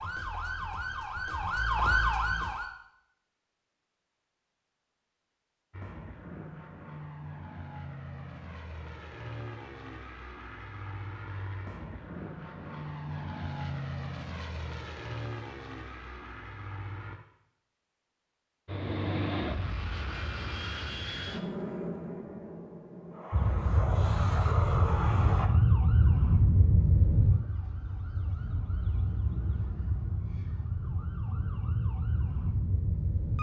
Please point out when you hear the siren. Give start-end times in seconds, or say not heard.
0.0-2.7, 23.3-33.3.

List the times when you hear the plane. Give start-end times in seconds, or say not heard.
5.7-17.2, 18.6-25.5.